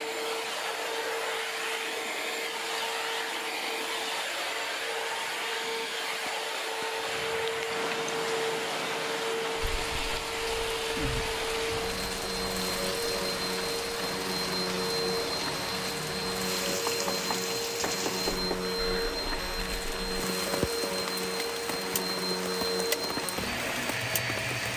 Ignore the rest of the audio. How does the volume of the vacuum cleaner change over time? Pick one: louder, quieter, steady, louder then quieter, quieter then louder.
steady.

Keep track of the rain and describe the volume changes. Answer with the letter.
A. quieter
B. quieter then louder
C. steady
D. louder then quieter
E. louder
E.